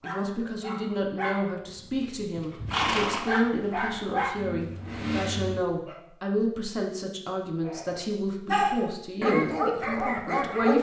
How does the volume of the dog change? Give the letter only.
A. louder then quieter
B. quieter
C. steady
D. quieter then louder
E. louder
E.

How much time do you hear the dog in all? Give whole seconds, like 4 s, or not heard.
9 s.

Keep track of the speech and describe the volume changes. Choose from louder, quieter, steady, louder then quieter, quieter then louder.
steady.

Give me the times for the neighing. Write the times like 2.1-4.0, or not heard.
2.4-4.0.